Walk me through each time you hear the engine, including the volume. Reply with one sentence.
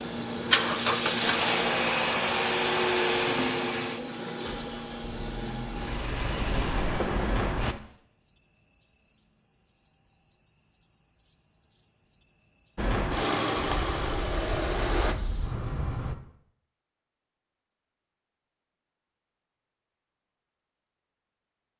You can hear the engine from 0.0 to 7.8 s, getting quieter then louder; and briefly from 12.8 to 15.2 s.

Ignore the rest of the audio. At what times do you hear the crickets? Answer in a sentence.
You can hear the crickets from 0.0 to 16.1 s.